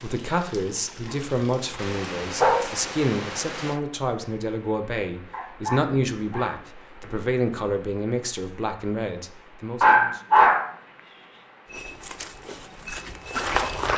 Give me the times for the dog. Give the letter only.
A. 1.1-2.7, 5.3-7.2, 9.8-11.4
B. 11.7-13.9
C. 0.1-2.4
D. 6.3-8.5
A.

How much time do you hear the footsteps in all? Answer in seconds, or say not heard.
2 s.